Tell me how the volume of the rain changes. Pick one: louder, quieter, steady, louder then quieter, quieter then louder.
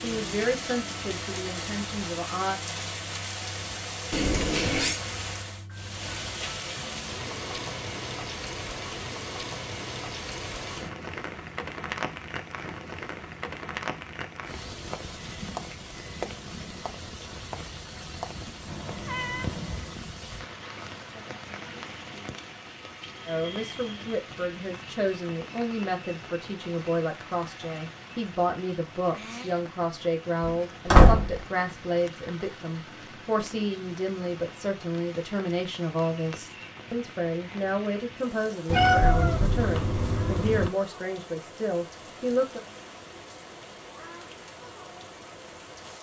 quieter.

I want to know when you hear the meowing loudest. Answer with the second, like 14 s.
39 s.